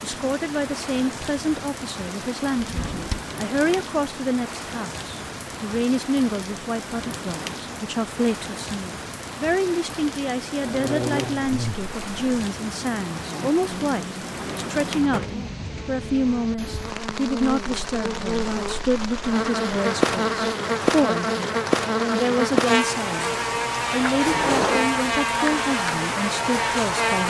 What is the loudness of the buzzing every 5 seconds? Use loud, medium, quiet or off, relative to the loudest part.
off, off, medium, medium, loud, loud.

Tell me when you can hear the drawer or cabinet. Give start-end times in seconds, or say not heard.
2.5-3.2, 14.2-15.4, 24.2-24.9.